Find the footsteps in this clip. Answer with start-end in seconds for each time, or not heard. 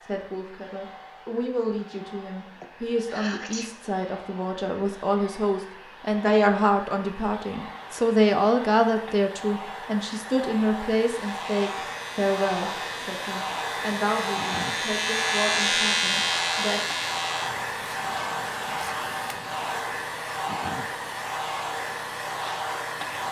not heard.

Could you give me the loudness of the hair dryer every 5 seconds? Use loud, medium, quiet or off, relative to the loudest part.
quiet, medium, loud, loud, loud.